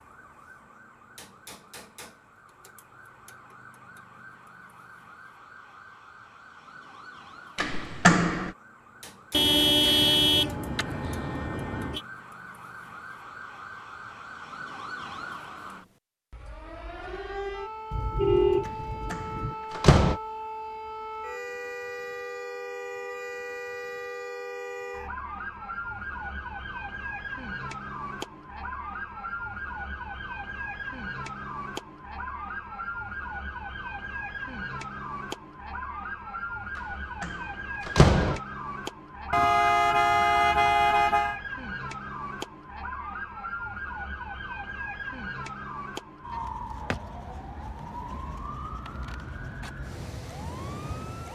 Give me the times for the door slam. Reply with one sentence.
The door slam can be heard from 7.5 to 8.5 s, from 19.1 to 20.1 s and from 37.2 to 38.4 s.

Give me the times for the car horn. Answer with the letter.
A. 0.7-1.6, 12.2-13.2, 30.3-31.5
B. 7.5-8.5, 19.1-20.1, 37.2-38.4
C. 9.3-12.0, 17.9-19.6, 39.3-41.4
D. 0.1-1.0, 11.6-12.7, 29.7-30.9
C.